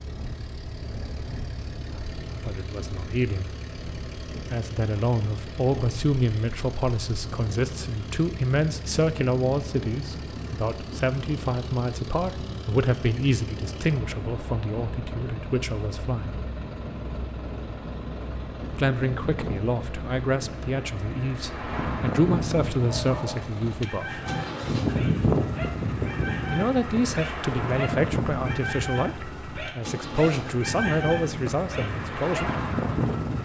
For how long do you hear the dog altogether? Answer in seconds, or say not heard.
10 s.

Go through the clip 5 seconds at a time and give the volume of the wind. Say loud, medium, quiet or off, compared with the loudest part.
quiet, medium, medium, medium, loud, loud, loud.